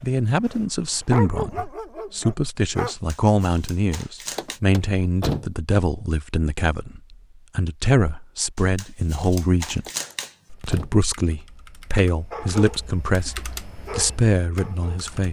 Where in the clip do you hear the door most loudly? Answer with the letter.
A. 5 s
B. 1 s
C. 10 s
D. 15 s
A.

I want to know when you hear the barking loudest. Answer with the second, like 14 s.
1 s.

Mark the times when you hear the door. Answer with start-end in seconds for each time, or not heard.
4.3-5.5, 9.8-11.0.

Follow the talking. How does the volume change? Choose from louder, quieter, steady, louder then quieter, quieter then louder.
steady.